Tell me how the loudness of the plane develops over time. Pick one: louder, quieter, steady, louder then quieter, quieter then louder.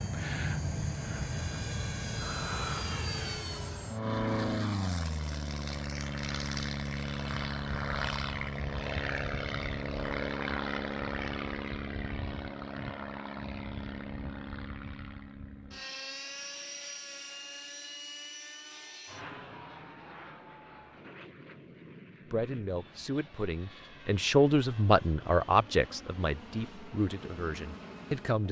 quieter.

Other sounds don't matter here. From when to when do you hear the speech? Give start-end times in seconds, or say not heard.
22.3-28.4.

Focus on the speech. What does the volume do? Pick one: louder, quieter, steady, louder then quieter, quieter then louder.
louder then quieter.